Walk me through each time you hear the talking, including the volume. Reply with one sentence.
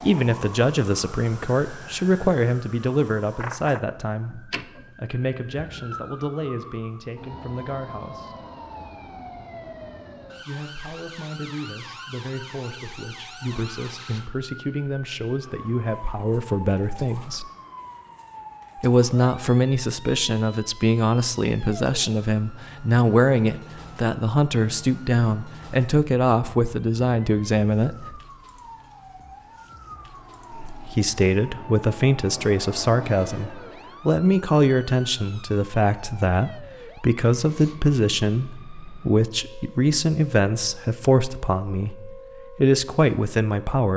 You can hear the talking from 0.0 to 8.4 s, getting quieter; from 10.4 to 17.5 s, getting louder; from 18.8 to 28.2 s, at a steady volume; and from 30.5 to 43.9 s, at a steady volume.